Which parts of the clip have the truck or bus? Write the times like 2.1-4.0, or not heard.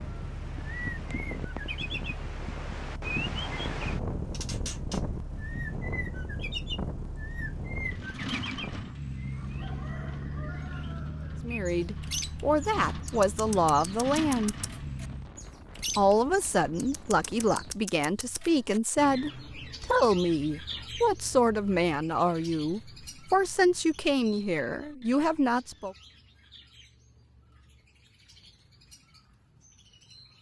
0.0-15.3.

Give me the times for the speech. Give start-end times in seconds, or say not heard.
11.4-14.6, 15.9-25.9.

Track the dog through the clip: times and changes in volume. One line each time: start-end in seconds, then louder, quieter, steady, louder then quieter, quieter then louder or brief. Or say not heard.
not heard.